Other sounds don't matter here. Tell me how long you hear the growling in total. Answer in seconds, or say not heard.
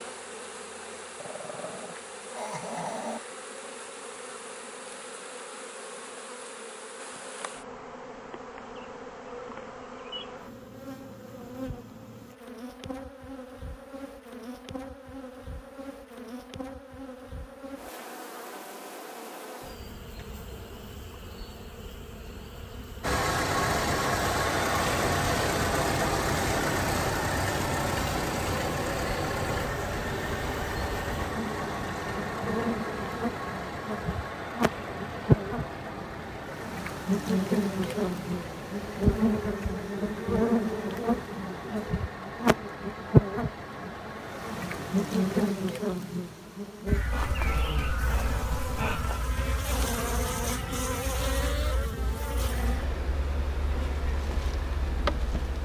4 s.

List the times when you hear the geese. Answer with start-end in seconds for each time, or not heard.
not heard.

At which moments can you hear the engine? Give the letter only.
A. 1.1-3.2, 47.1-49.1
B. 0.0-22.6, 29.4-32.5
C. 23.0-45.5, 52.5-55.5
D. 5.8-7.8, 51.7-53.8
C.